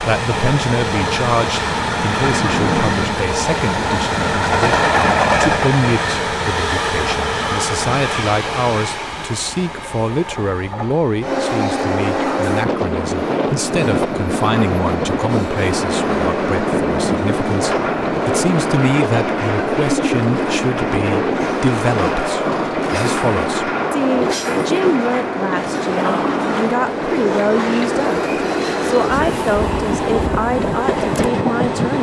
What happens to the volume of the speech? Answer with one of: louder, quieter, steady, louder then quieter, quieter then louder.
steady.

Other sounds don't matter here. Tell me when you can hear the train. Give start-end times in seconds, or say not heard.
0.0-31.9.